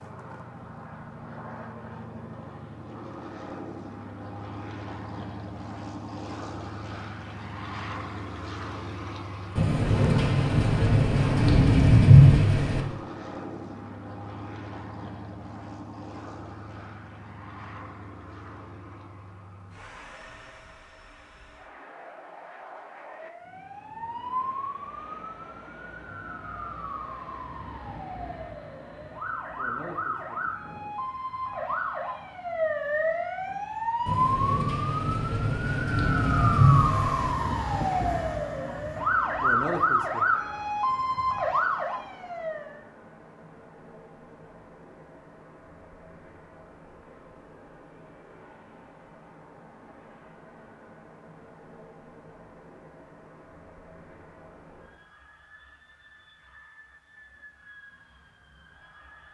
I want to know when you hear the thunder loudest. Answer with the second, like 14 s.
12 s.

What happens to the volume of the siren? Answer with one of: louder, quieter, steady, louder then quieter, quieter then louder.
louder.